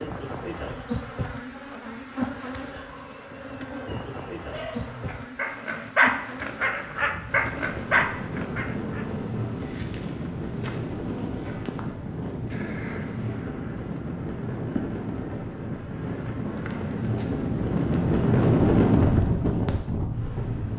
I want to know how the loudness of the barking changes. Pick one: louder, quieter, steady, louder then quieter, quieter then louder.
louder.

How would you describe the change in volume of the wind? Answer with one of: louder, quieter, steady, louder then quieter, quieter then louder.
louder.